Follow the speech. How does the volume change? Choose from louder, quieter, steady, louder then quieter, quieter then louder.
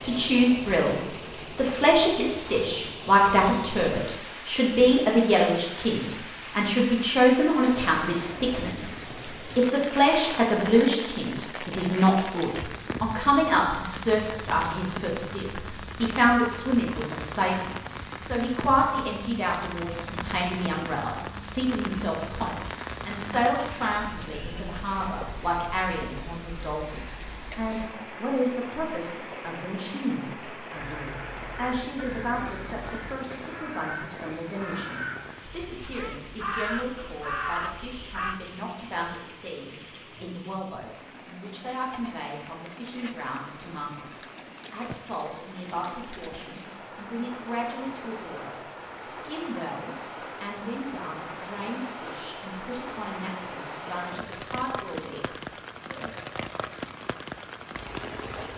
quieter.